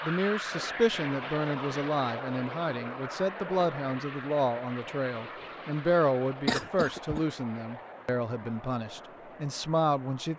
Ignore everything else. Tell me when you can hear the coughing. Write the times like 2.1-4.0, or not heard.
6.5-7.2.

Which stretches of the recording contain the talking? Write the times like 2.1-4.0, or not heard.
0.0-10.3.